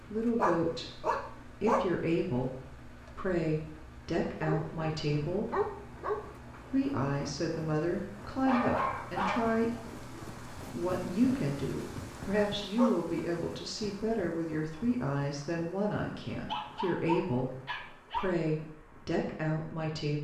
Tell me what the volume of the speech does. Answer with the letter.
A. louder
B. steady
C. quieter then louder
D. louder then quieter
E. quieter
B.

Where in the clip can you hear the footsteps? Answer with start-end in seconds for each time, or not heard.
not heard.